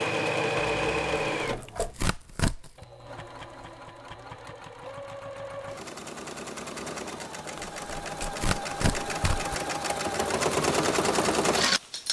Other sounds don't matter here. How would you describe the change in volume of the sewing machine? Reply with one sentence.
The volume of the sewing machine goes down, then up.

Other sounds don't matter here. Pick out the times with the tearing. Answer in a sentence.
The tearing can be heard from 1.4 to 2.9 s and from 7.5 to 9.6 s.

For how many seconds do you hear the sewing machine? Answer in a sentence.
You can hear the sewing machine for 12 seconds altogether.